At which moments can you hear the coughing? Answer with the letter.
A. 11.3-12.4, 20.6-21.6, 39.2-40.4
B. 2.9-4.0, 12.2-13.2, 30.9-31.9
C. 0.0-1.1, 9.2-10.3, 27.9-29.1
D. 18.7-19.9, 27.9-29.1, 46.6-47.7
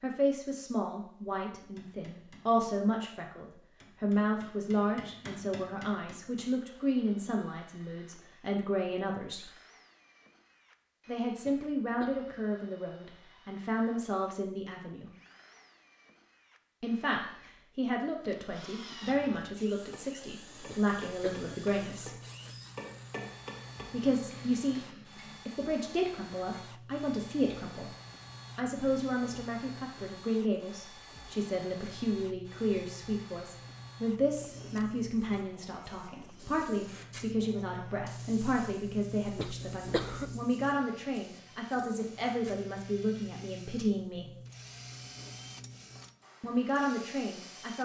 A.